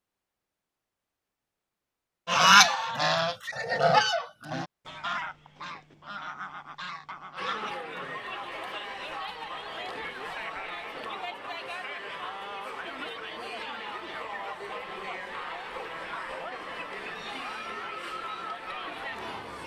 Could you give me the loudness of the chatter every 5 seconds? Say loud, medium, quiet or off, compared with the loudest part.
off, loud, loud, loud.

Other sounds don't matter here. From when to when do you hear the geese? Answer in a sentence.
You can hear the geese from 2.2 to 7.8 s.